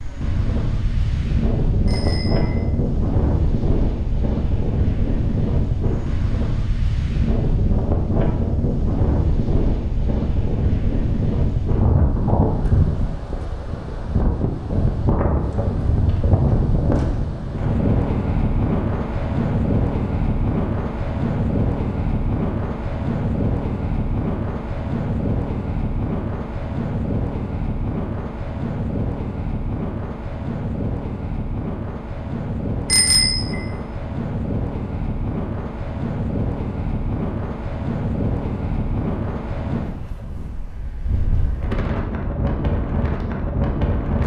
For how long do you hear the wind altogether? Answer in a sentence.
You can hear the wind for 44 seconds altogether.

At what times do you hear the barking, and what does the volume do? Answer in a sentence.
The barking can't be heard in this clip.